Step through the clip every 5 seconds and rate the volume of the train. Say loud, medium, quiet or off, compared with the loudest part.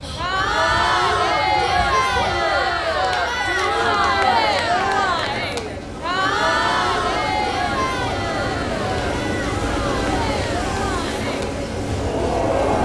medium, loud, loud.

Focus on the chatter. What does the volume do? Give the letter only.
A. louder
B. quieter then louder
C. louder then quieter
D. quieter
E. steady
D.